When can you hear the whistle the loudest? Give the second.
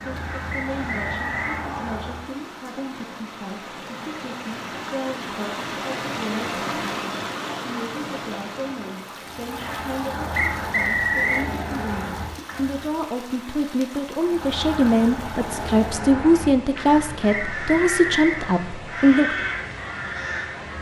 11 s.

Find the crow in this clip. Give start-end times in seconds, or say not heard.
0.0-2.3, 9.2-12.9, 14.2-20.7.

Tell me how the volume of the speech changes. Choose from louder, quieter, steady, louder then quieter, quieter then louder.
louder.